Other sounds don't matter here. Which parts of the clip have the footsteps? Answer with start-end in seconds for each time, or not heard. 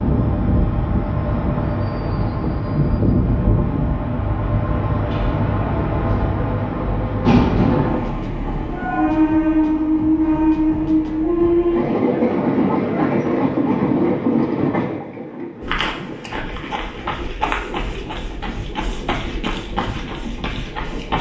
15.6-21.1.